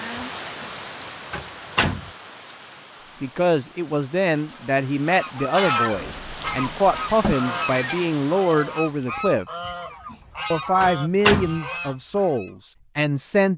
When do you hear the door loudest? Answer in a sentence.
The volume of the door peaks at 11 seconds.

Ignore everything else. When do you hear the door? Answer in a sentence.
The door can be heard from 0.1 to 0.7 s, from 1.3 to 2.1 s, from 5.9 to 7.3 s, from 9.7 to 10.2 s and from 10.8 to 11.6 s.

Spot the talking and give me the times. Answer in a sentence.
The talking can be heard from 3.2 to 9.4 s and from 10.5 to 13.5 s.